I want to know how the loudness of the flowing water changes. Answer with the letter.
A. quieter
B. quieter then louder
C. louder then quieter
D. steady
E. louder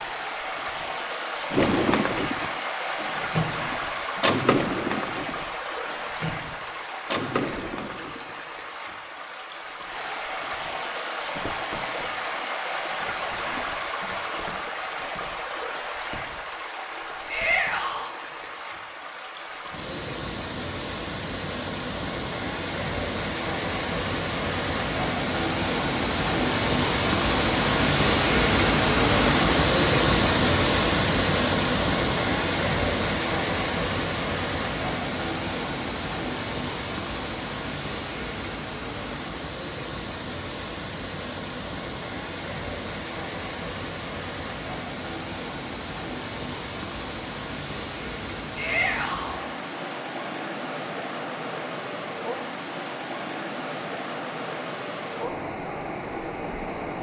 C.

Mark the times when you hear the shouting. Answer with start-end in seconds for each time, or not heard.
17.2-18.1, 48.5-49.4.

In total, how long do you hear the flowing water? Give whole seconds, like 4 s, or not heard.
57 s.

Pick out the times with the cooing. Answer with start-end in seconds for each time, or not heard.
1.5-8.9.